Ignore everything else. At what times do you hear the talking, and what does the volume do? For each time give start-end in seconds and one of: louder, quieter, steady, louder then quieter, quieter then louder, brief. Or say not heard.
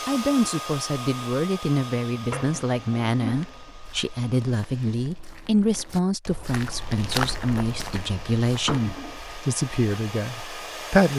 0.1-11.1 steady.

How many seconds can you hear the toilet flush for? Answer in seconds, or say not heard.
2 s.